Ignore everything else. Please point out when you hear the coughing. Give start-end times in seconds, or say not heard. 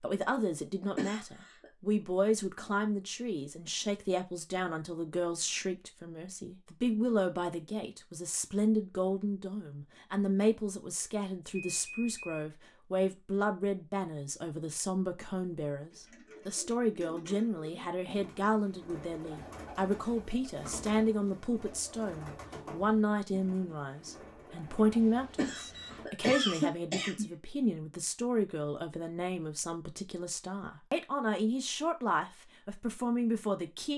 0.9-1.7, 25.4-27.2.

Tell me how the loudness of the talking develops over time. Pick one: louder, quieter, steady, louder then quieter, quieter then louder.
steady.